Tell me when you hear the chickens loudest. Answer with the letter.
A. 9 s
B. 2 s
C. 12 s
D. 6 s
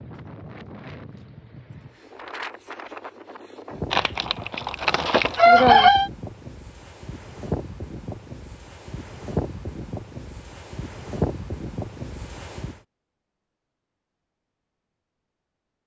D.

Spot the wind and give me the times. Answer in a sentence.
The wind can be heard from 0.0 to 12.8 s.